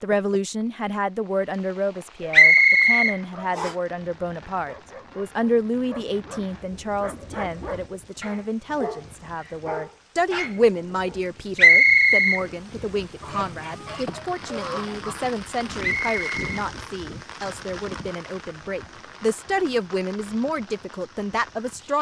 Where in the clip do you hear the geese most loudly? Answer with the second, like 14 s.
15 s.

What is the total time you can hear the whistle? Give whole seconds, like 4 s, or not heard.
3 s.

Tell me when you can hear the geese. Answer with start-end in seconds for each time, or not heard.
13.2-15.2.